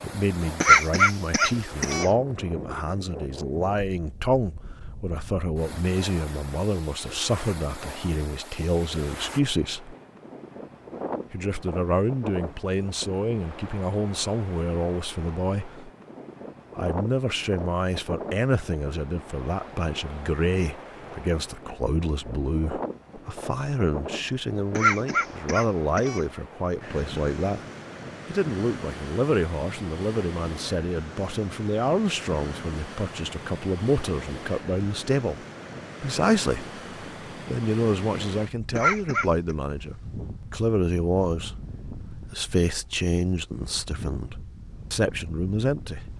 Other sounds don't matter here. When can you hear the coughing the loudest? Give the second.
1 s.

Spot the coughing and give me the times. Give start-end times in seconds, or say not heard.
0.6-2.0, 24.7-26.2, 38.8-39.5.